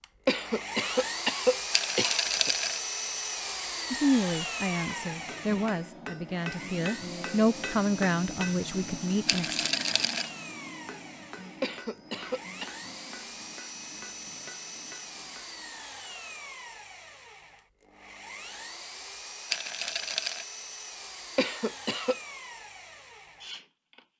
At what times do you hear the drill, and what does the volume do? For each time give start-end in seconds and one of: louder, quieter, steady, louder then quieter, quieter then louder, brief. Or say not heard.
0.0-24.1 quieter.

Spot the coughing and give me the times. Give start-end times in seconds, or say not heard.
0.2-2.5, 11.6-12.7, 21.4-22.1.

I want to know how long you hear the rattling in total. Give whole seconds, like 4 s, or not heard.
3 s.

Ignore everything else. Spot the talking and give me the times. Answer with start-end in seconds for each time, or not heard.
3.9-9.7.